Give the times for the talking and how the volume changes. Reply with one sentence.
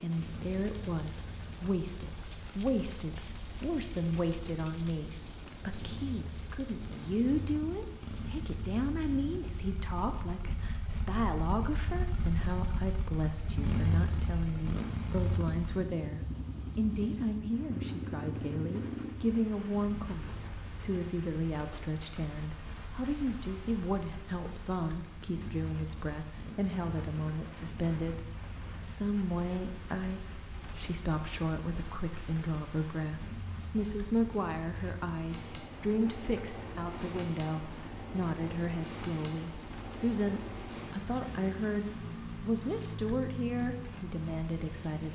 The talking can be heard from 0.0 to 45.1 s, at a steady volume.